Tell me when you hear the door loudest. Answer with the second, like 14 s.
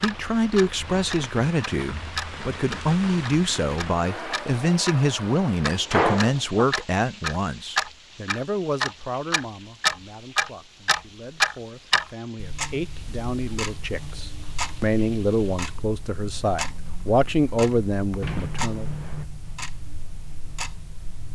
6 s.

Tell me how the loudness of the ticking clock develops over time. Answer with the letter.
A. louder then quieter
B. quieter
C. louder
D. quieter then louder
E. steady
A.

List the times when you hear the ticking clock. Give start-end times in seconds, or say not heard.
0.0-21.3.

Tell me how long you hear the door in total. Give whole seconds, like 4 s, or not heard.
2 s.